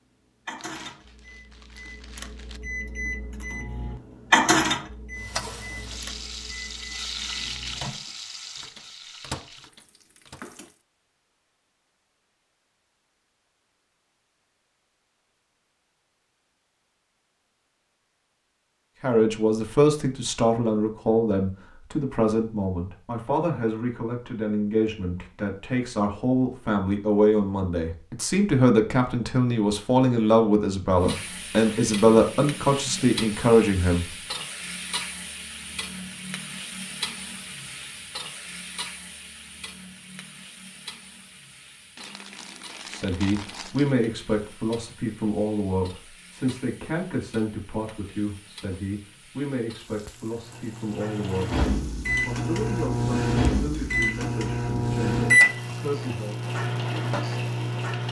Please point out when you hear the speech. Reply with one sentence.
The speech can be heard from 19.0 to 34.1 s and from 42.9 to 56.4 s.